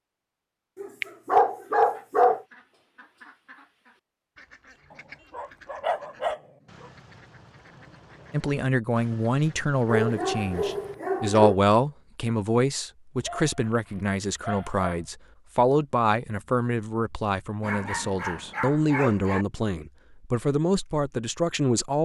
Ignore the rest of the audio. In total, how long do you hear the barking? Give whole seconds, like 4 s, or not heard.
9 s.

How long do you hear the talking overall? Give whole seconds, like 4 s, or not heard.
14 s.